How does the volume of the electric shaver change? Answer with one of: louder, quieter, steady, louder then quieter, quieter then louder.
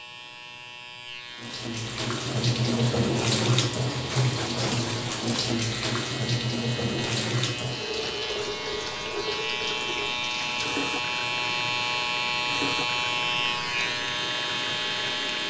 louder.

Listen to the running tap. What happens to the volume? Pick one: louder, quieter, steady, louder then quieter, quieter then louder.
quieter.